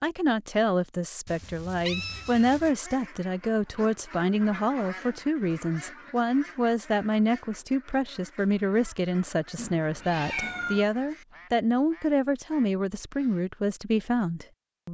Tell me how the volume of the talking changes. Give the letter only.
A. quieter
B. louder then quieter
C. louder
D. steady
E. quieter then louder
D.